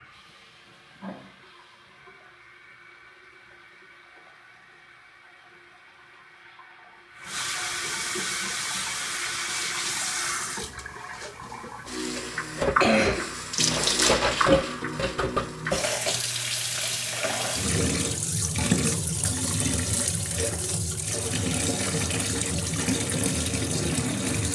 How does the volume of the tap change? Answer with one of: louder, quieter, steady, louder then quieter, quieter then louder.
louder.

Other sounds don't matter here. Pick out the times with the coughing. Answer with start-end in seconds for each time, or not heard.
12.6-13.2.